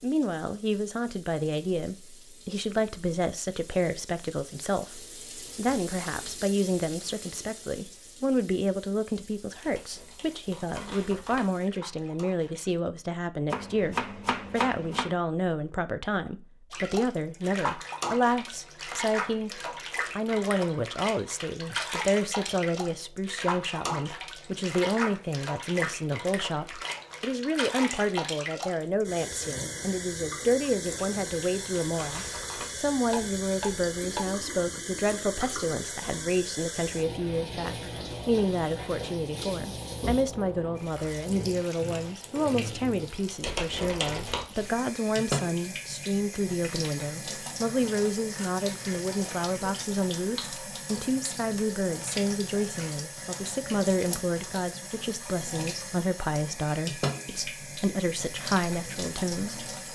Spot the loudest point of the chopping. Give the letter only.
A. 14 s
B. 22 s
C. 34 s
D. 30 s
A.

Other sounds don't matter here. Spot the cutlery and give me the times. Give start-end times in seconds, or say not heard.
not heard.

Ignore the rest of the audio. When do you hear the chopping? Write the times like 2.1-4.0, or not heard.
13.5-15.2, 33.1-34.4.